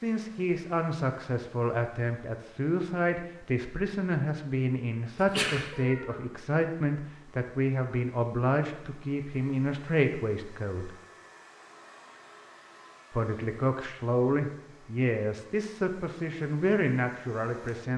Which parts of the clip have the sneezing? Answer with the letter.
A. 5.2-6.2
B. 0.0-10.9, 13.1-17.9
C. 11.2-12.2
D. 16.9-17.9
A.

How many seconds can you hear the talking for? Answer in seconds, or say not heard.
16 s.